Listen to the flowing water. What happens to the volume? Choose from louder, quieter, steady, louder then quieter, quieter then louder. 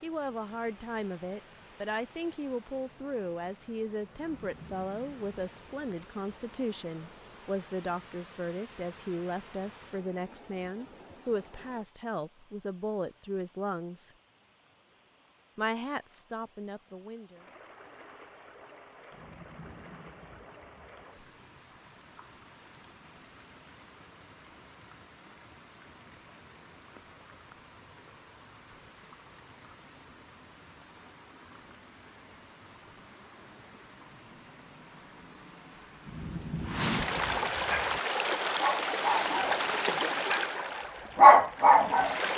louder.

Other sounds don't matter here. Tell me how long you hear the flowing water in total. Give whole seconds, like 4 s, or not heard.
42 s.